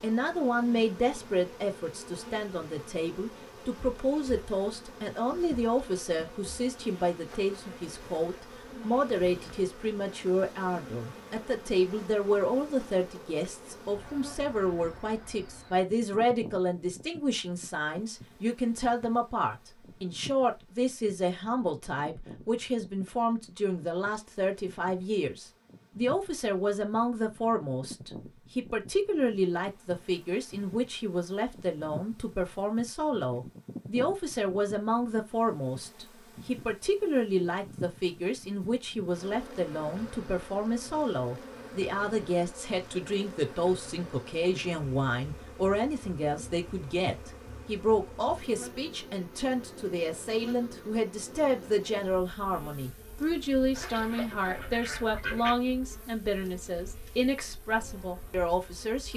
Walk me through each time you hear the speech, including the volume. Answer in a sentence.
You can hear the speech from 0.0 to 59.1 s, at a steady volume.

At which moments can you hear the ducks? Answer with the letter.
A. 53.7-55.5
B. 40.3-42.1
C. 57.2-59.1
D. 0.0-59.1
A.